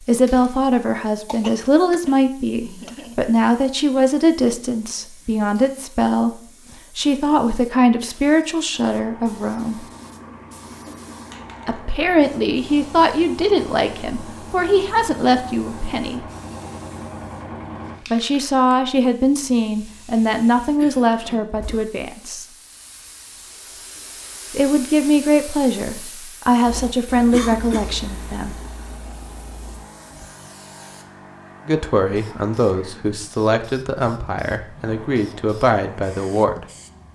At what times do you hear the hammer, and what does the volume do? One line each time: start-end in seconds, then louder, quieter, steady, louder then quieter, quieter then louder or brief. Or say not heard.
not heard.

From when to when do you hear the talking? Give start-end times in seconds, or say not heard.
0.0-9.8, 11.7-16.2, 18.1-22.4, 24.5-28.6, 31.6-36.6.